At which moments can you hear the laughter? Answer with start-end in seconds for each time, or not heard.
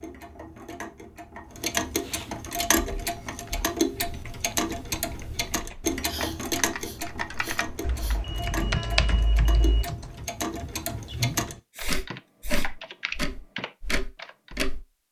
not heard.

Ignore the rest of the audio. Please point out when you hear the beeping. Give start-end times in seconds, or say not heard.
7.8-9.8.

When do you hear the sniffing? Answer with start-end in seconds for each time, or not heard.
1.9-2.4, 6.0-8.2, 11.7-12.7.